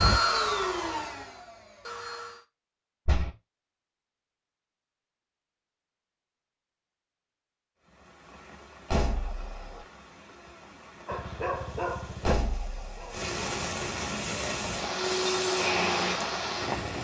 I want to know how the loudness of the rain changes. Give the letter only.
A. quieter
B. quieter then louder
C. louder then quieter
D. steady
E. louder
E.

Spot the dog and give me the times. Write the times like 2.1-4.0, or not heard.
11.1-13.2.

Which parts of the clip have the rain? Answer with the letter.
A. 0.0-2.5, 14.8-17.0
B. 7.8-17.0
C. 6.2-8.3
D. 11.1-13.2
B.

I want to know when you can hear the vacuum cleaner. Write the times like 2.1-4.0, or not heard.
0.0-2.5, 14.8-17.0.